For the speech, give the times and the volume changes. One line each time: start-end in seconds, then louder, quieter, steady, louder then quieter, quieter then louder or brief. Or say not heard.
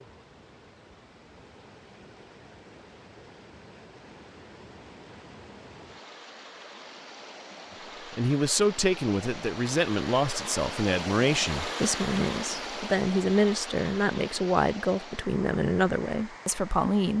8.1-17.1 steady.